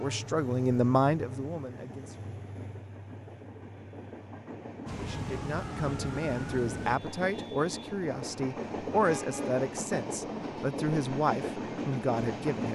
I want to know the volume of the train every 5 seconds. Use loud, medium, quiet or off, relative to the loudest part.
medium, loud, loud.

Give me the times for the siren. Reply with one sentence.
The siren can be heard from 4.8 to 7.0 s.